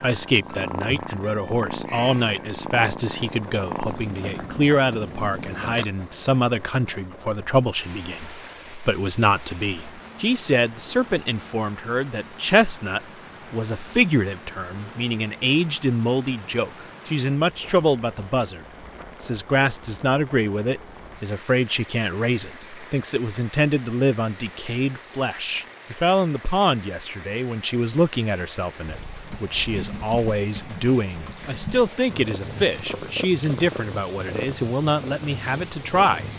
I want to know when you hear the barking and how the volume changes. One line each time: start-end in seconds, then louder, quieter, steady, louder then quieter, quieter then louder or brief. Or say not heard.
not heard.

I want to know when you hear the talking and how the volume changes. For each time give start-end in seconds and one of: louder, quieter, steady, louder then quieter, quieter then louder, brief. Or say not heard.
0.0-36.2 steady.